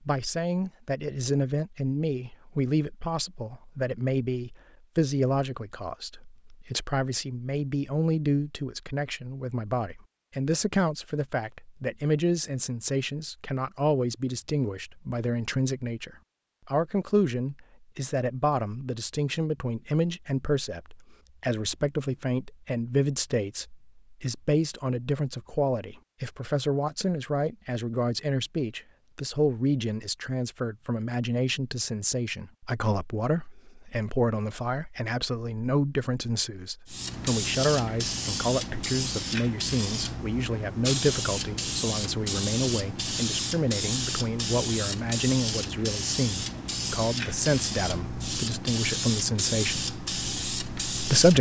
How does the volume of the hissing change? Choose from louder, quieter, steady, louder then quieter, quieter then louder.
steady.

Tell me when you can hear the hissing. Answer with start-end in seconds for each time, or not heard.
36.9-51.3.